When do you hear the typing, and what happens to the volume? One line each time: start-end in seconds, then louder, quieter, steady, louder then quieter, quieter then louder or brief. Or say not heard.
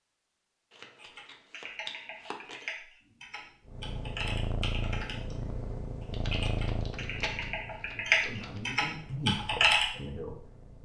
0.9-9.9 louder.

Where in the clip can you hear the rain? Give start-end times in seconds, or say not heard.
not heard.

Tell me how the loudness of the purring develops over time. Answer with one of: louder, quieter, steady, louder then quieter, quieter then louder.
quieter.